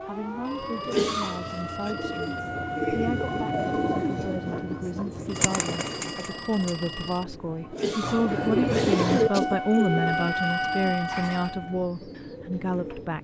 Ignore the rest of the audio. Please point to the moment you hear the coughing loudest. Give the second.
1 s.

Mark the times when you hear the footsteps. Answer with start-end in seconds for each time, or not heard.
not heard.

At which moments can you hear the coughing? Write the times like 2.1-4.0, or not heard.
0.8-1.9, 7.7-9.4.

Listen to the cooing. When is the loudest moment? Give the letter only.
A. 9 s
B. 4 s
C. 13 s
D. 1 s
A.